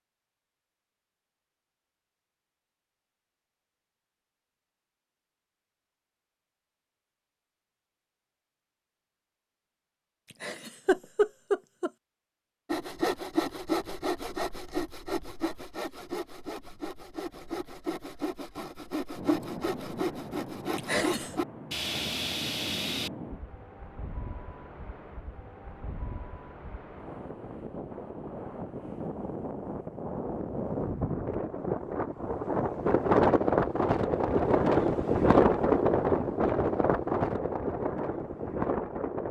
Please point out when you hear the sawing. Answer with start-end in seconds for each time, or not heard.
12.7-23.1.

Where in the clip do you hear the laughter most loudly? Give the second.
11 s.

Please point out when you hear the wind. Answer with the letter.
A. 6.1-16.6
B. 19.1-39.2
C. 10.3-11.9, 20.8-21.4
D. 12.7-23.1
B.